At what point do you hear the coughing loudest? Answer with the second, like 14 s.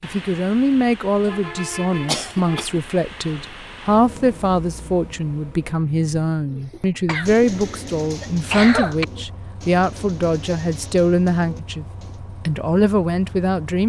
9 s.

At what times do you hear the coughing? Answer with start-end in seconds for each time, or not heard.
2.0-2.8, 7.0-9.1.